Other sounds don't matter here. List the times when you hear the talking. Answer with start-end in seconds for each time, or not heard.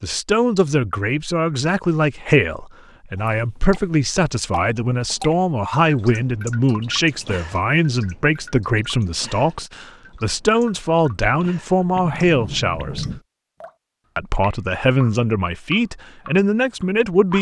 0.0-13.1, 14.2-17.3.